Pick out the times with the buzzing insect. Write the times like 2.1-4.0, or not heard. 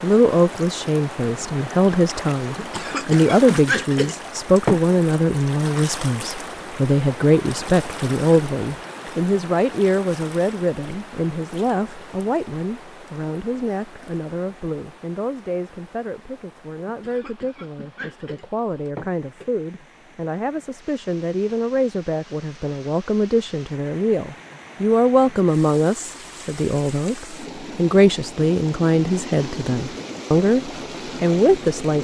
not heard.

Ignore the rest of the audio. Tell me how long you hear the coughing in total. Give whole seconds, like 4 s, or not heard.
5 s.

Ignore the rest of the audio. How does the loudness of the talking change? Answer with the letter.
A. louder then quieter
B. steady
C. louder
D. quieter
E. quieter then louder
E.